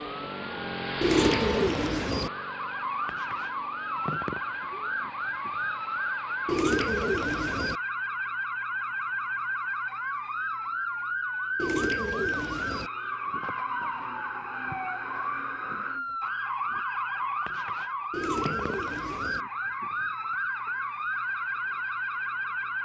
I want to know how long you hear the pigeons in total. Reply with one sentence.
You can hear the pigeons for 5 seconds altogether.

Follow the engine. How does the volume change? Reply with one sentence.
The volume of the engine goes down.